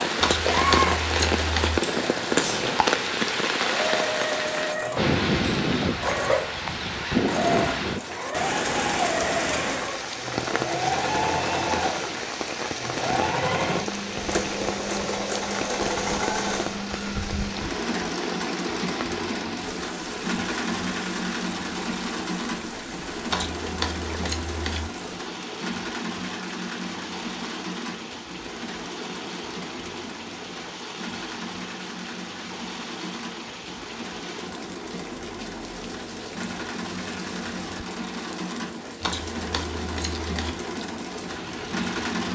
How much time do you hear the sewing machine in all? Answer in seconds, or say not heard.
42 s.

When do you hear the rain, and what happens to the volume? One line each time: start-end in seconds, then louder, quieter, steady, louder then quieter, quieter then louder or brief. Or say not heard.
0.0-42.3 quieter.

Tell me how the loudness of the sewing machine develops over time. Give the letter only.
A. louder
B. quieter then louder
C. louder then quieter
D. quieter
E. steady
D.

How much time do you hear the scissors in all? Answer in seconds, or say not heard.
5 s.